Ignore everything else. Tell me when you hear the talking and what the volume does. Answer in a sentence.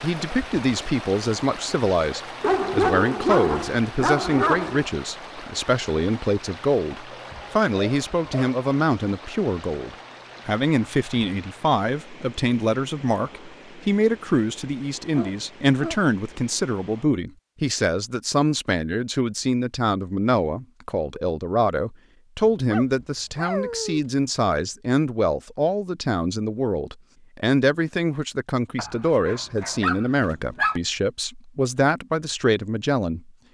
The talking can be heard from 0.0 to 33.3 s, at a steady volume.